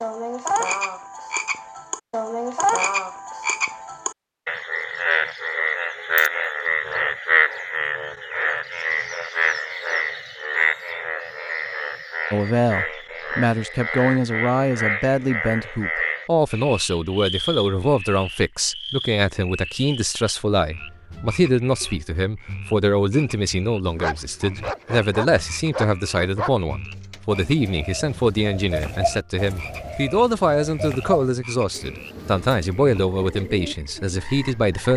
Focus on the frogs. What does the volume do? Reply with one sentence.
The volume of the frogs goes down.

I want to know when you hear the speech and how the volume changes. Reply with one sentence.
The speech can be heard from 12.3 to 34.9 s, at a steady volume.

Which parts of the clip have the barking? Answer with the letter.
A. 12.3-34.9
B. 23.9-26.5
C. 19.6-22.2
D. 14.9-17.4
B.